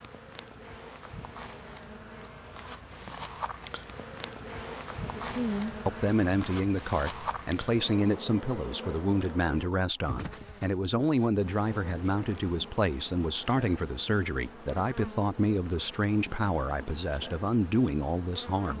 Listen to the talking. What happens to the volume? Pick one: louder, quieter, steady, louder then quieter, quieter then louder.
steady.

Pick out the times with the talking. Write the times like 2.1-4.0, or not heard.
5.2-18.7.